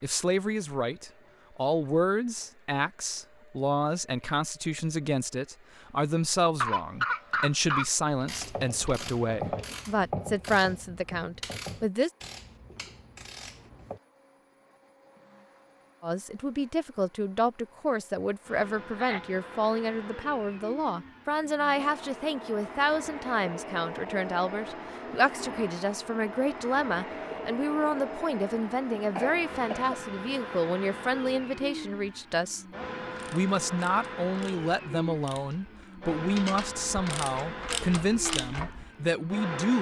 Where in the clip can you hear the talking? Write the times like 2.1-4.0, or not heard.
0.0-12.1, 16.0-32.6, 33.3-39.7.